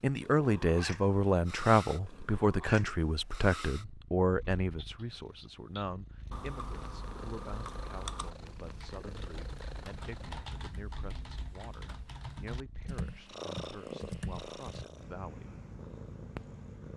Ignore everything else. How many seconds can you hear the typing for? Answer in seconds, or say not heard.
10 s.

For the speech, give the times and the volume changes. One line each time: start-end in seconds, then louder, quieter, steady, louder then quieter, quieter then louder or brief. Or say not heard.
0.0-15.6 quieter.